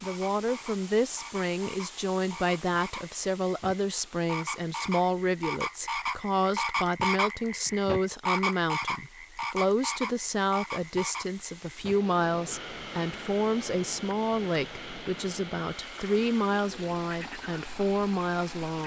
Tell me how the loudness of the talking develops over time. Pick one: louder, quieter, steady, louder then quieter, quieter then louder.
steady.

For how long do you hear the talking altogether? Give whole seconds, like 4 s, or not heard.
19 s.